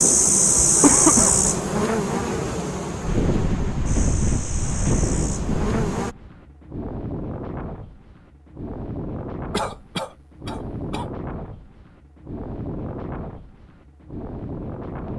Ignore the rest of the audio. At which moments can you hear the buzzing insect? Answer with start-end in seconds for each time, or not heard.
0.0-6.2.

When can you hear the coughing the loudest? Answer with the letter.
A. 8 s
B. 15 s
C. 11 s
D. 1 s
D.